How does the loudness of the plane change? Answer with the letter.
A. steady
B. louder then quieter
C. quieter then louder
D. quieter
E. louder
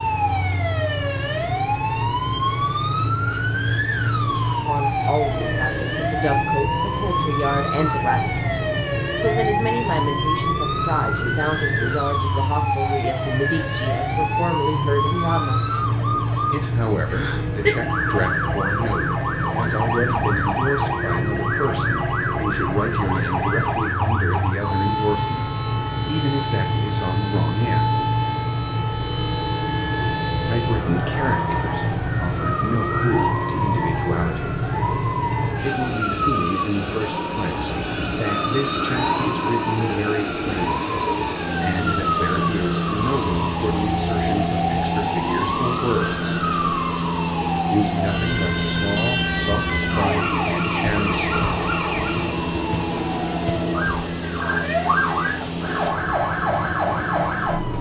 A.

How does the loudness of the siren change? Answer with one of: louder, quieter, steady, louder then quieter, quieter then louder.
steady.